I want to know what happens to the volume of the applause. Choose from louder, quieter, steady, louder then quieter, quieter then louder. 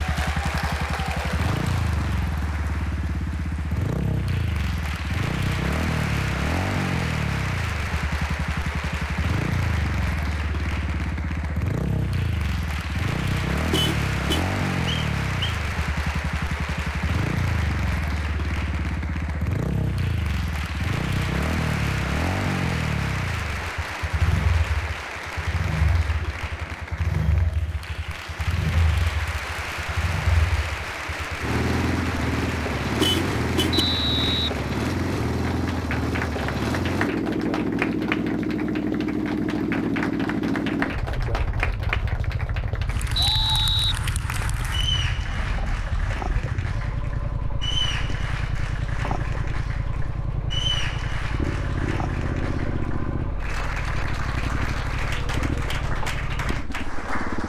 steady.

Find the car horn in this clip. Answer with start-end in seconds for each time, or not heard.
13.7-14.4, 33.0-33.9.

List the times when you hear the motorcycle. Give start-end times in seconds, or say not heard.
0.0-57.4.